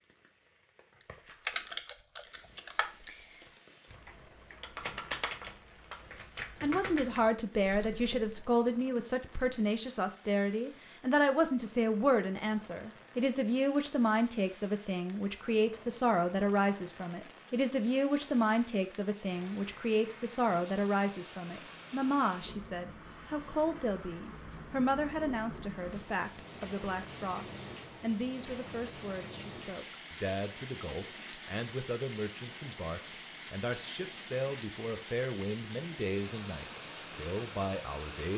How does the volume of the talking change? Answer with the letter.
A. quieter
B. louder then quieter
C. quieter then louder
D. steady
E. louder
A.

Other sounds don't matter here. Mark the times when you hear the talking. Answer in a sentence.
You can hear the talking from 6.6 to 38.3 s.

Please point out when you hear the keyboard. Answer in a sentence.
You can hear the keyboard from 1.4 to 8.5 s.